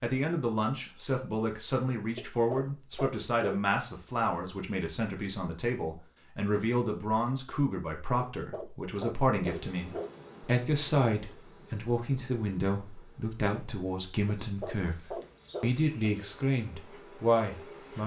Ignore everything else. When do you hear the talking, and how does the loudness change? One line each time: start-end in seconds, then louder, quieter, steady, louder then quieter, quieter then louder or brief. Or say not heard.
0.0-18.0 steady.